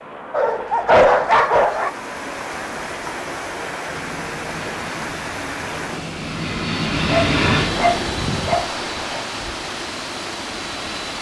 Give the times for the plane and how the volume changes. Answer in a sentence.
The plane can be heard from 0.0 to 11.1 s, getting louder then quieter.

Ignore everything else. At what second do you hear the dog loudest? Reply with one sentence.
The volume of the dog peaks at 1 second.